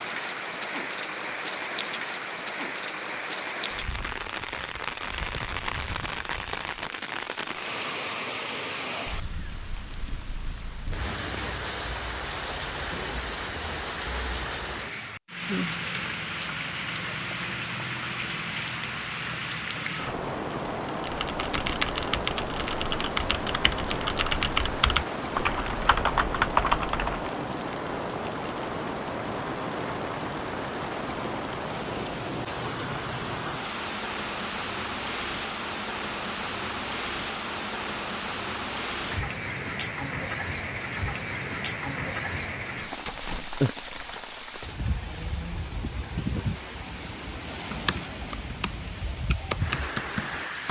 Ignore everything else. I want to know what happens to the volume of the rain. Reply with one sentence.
The volume of the rain stays about the same.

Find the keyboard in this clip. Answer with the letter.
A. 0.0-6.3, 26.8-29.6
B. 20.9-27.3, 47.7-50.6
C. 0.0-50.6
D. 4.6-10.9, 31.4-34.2
B.